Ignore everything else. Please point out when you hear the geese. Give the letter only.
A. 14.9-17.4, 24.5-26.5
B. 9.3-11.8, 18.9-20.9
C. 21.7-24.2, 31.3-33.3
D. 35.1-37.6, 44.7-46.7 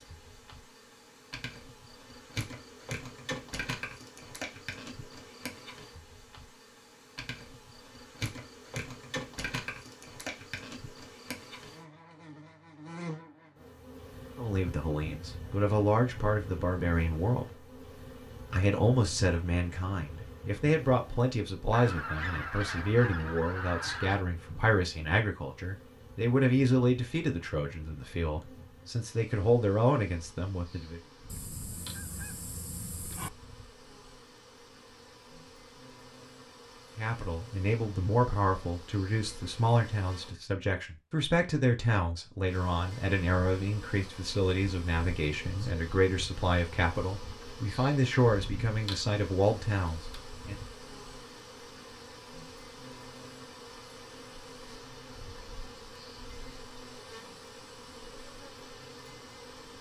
C.